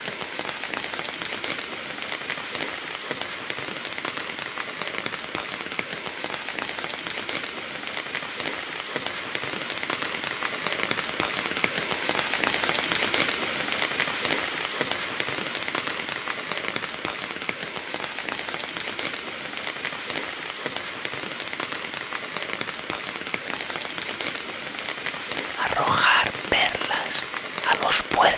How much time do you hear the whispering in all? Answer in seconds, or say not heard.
3 s.